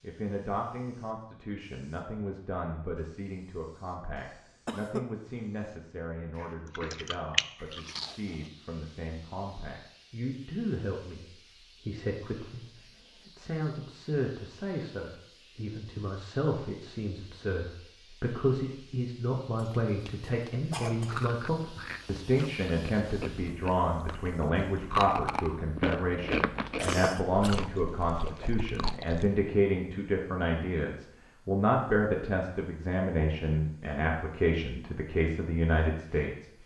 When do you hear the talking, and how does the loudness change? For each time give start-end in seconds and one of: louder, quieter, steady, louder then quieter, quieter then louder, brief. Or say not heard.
0.0-36.6 louder.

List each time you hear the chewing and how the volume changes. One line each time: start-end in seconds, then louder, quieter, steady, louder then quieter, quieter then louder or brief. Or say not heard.
6.8-8.5 brief
20.9-29.3 louder then quieter.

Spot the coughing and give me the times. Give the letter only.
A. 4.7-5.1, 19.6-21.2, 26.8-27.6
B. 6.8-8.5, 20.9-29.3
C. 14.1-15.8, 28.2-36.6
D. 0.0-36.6
A.